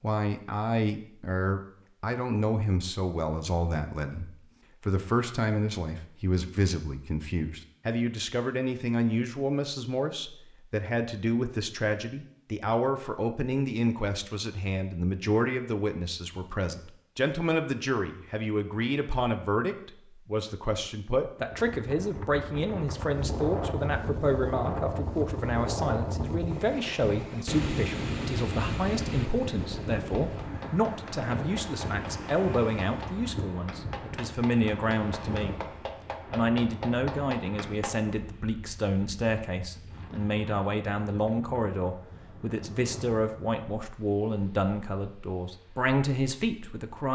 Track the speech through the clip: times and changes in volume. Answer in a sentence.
You can hear the speech from 0.0 to 35.5 s, at a steady volume; and from 36.3 to 47.1 s, at a steady volume.